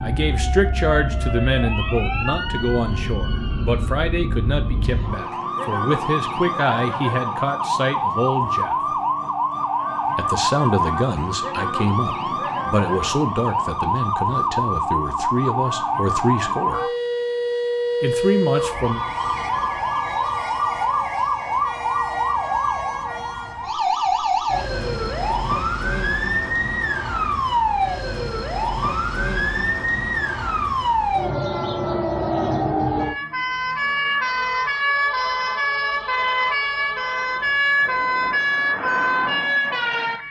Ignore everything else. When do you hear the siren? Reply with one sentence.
The siren can be heard from 0.0 to 40.2 s.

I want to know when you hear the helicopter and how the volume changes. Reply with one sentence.
The helicopter can't be heard in this clip.